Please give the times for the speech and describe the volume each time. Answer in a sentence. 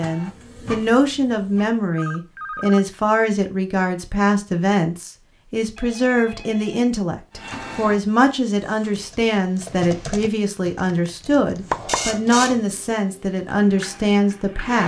You can hear the speech from 0.0 to 14.8 s, at a steady volume.